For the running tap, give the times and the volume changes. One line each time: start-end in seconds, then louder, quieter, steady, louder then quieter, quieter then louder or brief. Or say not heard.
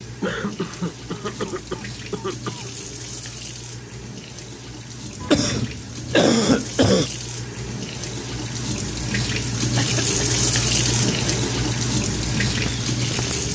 0.0-13.5 louder.